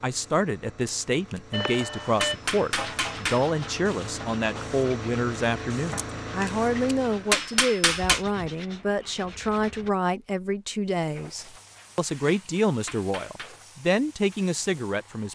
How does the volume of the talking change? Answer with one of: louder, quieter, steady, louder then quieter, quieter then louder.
steady.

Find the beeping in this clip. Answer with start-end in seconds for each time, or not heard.
1.5-2.4.